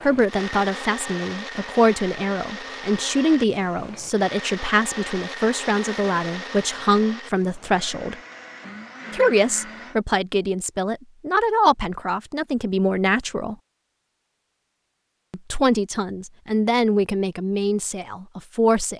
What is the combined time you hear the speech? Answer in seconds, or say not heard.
16 s.